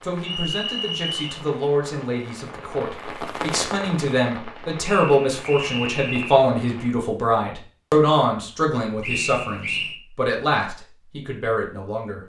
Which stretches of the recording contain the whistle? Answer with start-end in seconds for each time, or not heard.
0.2-1.2, 4.8-6.5, 9.0-10.0.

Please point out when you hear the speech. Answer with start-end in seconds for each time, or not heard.
0.0-12.2.